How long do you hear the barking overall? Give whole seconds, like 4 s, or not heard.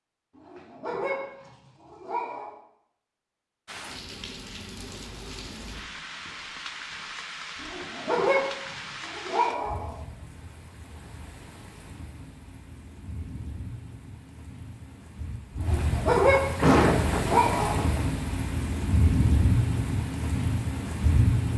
7 s.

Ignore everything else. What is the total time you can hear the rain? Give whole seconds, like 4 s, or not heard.
18 s.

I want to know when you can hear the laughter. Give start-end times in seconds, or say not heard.
16.6-18.1.